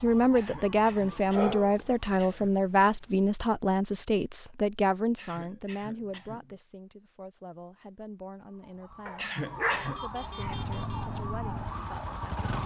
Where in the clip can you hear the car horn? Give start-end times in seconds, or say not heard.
not heard.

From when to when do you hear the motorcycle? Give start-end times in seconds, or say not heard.
10.4-12.6.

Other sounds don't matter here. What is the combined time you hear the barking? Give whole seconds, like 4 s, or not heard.
4 s.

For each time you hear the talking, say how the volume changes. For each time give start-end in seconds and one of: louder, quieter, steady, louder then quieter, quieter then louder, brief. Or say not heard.
0.0-12.5 quieter.